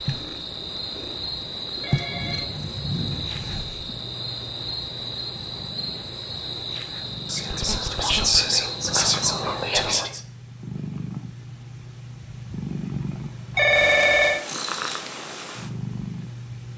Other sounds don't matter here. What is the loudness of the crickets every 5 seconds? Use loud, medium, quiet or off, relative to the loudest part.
loud, loud, off, off.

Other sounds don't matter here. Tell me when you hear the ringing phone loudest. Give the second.
14 s.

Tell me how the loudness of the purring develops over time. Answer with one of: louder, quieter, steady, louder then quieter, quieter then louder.
quieter then louder.